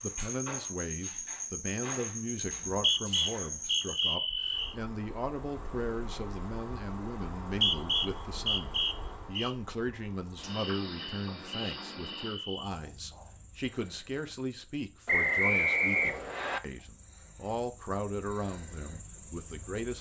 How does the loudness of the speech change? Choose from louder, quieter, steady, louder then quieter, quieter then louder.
steady.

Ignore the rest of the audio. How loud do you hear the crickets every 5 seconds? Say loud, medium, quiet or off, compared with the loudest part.
loud, medium, medium, quiet.